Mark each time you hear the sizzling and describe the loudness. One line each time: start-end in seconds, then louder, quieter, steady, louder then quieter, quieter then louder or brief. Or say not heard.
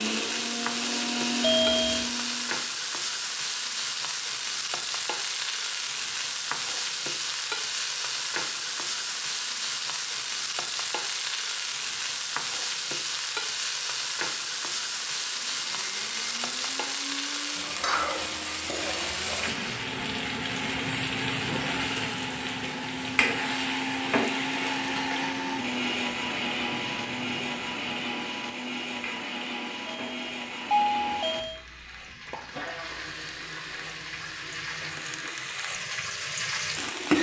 0.0-37.1 quieter.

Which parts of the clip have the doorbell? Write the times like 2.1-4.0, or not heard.
1.4-2.0, 29.9-31.6.